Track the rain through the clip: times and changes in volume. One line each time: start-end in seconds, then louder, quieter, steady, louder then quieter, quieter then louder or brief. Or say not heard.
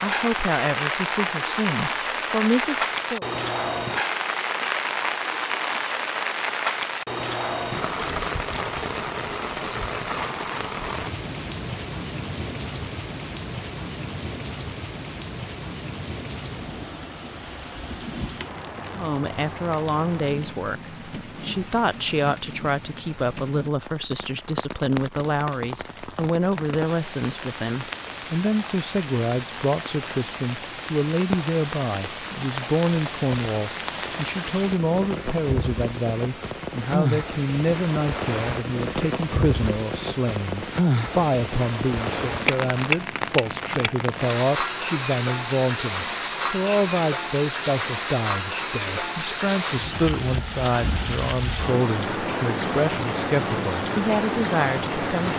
0.0-55.3 quieter then louder.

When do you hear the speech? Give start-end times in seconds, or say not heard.
0.0-3.2, 18.9-55.3.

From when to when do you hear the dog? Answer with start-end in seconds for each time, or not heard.
not heard.